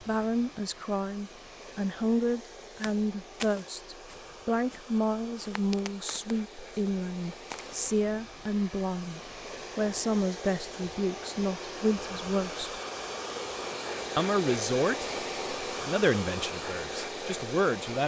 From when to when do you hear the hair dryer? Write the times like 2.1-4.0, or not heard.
0.0-18.0.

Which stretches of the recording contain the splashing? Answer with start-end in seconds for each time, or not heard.
not heard.